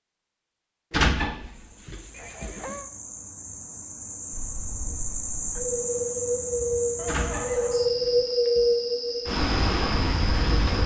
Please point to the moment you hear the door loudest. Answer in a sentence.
The volume of the door peaks at 1 second.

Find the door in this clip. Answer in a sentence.
You can hear the door from 0.9 to 2.8 s and from 7.0 to 8.8 s.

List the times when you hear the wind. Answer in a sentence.
The wind can be heard from 4.3 to 10.8 s.